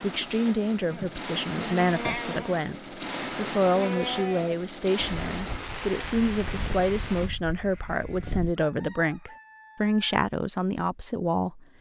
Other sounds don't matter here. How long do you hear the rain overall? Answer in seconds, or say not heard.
7 s.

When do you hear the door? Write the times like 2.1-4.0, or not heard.
not heard.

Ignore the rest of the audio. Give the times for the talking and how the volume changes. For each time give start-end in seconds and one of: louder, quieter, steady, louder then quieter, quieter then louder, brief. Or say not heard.
0.0-11.7 steady.